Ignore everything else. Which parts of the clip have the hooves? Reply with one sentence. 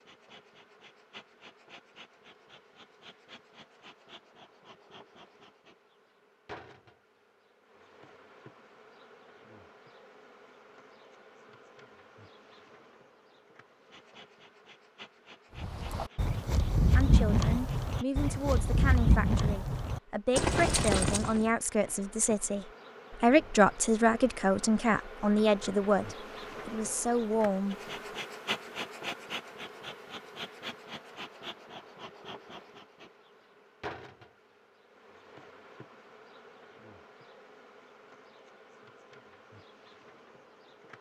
You can hear the hooves from 15.6 to 21.5 s.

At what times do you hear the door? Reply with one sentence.
The door can't be heard in this clip.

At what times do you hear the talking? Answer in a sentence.
The talking can be heard from 16.9 to 27.8 s.